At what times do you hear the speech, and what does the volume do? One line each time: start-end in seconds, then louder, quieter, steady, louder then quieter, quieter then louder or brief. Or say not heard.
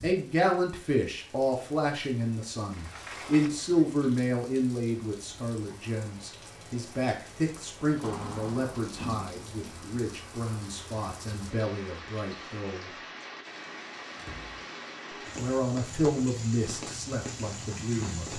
0.0-12.9 quieter
15.3-18.3 brief.